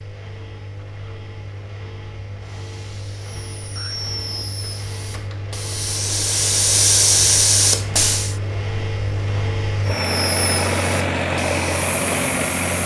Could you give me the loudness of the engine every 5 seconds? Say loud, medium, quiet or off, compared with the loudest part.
quiet, medium, loud.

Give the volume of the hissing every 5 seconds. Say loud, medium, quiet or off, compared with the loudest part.
quiet, loud, medium.